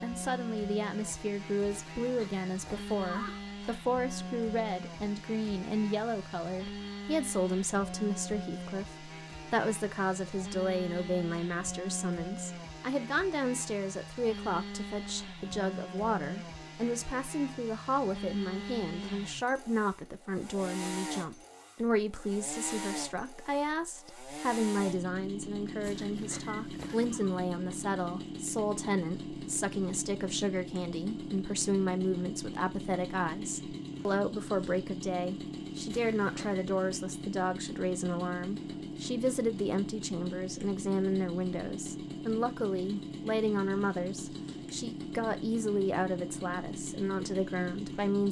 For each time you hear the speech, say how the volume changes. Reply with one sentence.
You can hear the speech from 0.0 to 48.2 s, at a steady volume.